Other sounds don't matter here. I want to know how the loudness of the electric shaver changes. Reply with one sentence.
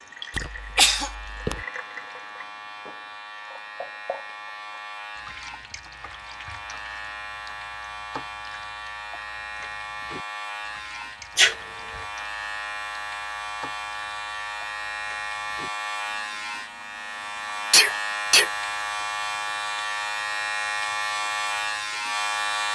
The volume of the electric shaver goes up.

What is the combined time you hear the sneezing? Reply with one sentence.
The sneezing can be heard for 3 seconds in total.